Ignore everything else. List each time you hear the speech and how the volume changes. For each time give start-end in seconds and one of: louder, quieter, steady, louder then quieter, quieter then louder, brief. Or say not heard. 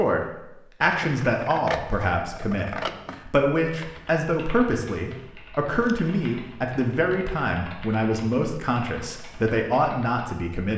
0.0-10.7 steady.